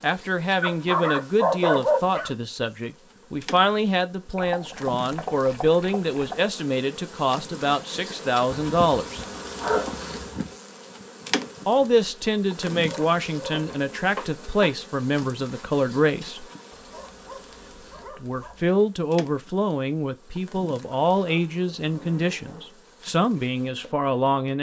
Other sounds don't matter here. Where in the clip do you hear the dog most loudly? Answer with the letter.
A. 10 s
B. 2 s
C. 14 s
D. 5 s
B.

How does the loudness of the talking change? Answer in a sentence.
The volume of the talking stays about the same.